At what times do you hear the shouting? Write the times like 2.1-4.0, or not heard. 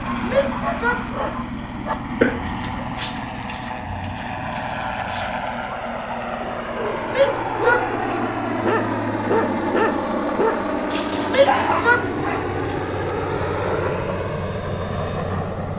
0.2-1.3, 7.0-8.3, 11.2-12.3.